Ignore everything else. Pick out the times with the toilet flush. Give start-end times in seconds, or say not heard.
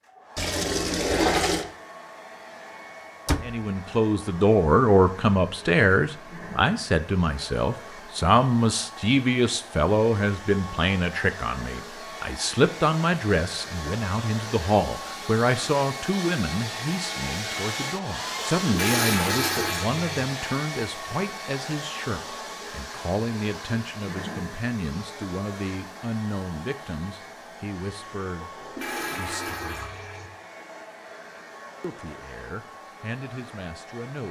0.3-1.6, 18.6-20.2, 28.4-30.3.